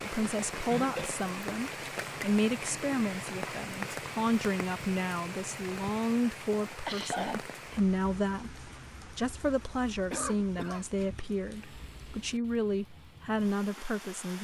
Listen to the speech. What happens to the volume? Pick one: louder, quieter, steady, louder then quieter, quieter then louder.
steady.